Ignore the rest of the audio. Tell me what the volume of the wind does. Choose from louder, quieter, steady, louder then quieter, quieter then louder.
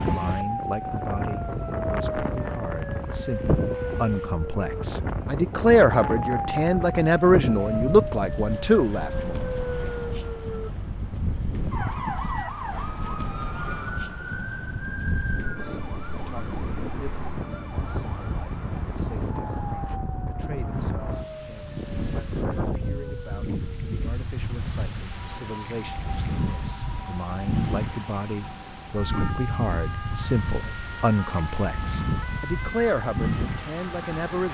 steady.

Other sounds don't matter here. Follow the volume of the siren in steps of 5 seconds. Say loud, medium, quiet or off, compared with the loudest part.
loud, loud, loud, medium, medium, medium, medium.